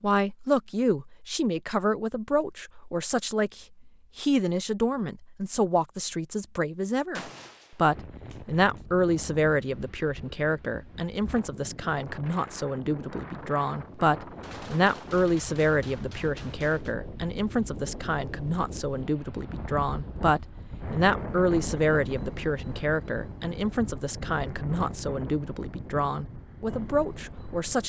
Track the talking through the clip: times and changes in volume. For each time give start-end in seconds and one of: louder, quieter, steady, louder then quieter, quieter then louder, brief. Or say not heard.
0.0-27.8 steady.